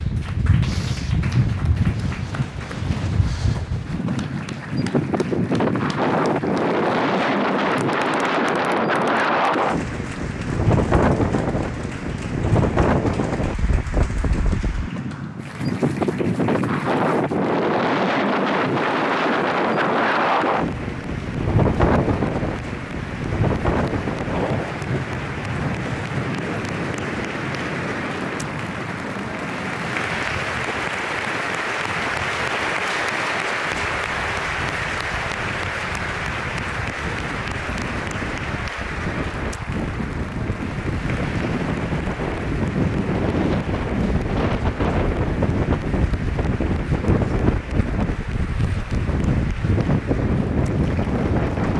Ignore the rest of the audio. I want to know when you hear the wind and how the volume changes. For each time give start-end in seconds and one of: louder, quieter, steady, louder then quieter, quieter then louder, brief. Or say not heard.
0.0-51.7 quieter then louder.